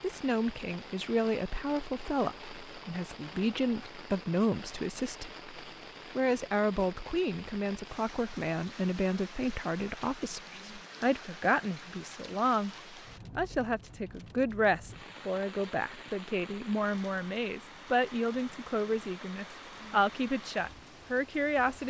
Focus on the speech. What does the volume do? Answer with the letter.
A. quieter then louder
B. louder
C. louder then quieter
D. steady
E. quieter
D.